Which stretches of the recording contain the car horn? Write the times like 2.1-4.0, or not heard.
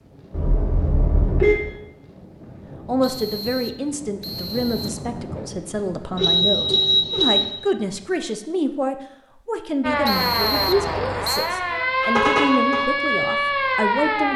0.3-1.6, 6.2-7.5, 12.0-12.8.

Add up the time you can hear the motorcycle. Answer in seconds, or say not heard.
not heard.